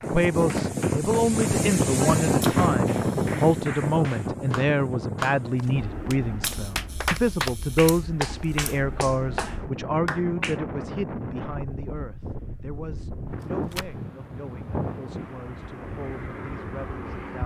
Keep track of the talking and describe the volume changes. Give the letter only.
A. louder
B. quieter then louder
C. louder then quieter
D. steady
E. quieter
E.